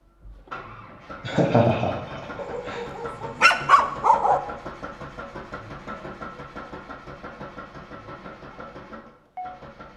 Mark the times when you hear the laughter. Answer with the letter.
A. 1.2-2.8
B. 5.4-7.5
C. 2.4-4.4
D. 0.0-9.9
A.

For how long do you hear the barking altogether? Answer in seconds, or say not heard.
2 s.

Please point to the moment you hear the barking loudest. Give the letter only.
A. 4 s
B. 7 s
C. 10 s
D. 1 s
A.